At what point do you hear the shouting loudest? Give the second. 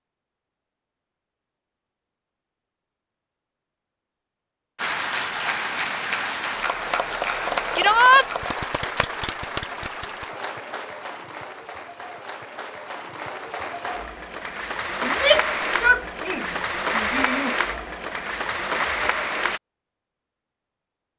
8 s.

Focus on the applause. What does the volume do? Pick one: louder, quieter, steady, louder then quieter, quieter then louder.
quieter then louder.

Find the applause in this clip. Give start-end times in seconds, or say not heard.
4.8-19.6.